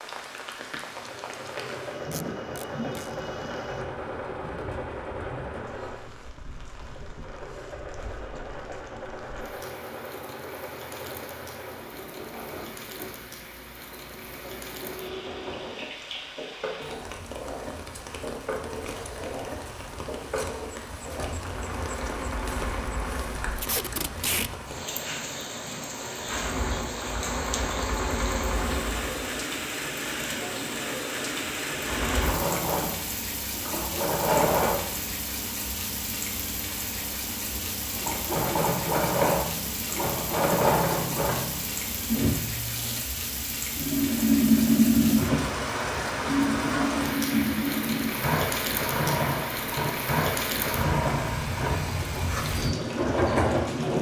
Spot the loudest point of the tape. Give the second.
24 s.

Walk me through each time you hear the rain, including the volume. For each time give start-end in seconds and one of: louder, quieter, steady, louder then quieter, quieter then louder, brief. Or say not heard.
0.0-53.9 louder.